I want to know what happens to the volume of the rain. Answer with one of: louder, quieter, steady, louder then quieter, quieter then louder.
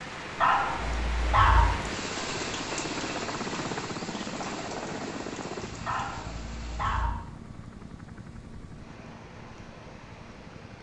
quieter.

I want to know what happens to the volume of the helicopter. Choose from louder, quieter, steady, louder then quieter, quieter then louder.
louder then quieter.